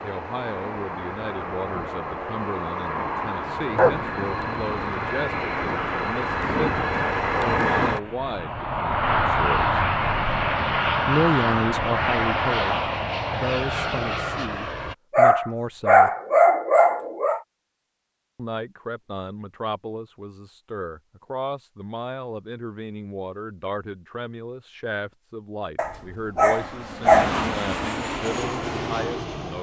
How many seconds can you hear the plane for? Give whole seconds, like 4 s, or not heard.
18 s.